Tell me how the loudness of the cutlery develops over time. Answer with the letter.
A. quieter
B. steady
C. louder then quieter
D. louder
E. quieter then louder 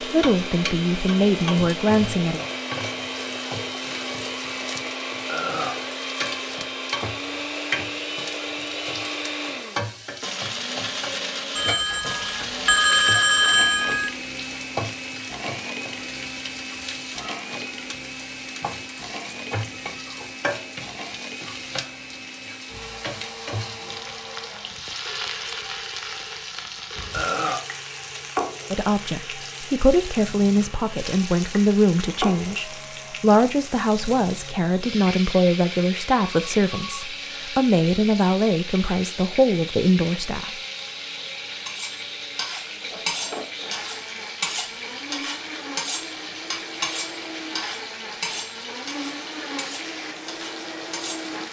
A.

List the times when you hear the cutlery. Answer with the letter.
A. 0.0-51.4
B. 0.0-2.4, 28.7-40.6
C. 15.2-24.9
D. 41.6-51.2
D.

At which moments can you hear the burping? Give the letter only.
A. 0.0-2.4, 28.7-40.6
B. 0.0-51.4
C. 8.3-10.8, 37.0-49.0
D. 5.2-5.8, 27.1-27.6
D.